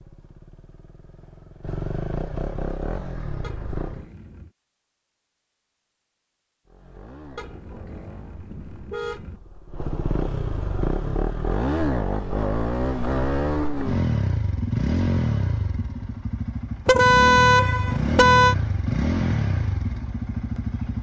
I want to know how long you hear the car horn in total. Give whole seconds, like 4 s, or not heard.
5 s.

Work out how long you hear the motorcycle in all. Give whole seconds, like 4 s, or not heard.
18 s.